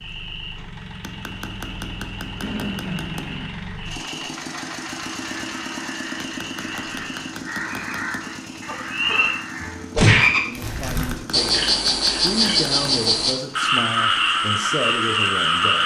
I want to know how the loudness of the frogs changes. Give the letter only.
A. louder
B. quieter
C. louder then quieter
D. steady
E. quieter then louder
A.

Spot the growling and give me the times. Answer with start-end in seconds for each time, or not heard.
2.4-3.5.